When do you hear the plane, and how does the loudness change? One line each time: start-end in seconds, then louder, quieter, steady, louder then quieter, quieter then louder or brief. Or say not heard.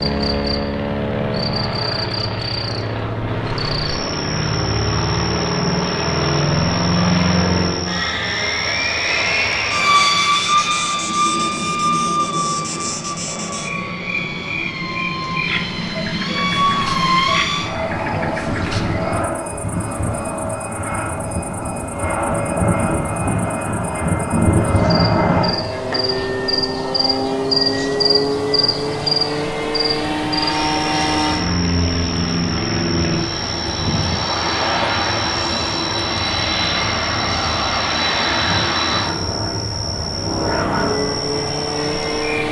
0.0-42.4 steady.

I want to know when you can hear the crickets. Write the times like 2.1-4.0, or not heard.
0.0-42.4.